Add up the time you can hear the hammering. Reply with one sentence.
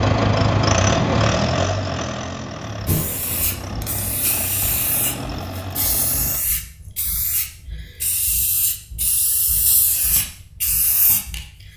The hammering can't be heard in this clip.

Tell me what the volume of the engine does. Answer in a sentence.
The volume of the engine goes down.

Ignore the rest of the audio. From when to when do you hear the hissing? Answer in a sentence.
You can hear the hissing from 2.8 to 11.4 s.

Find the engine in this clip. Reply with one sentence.
You can hear the engine from 0.0 to 6.4 s.